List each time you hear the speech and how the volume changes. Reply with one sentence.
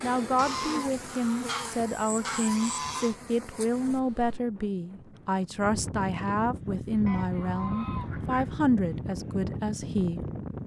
The speech can be heard from 0.0 to 10.2 s, at a steady volume.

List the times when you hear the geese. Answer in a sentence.
The geese can be heard from 0.3 to 3.1 s and from 7.0 to 8.6 s.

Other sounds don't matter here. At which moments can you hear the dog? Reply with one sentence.
You can't hear the dog here.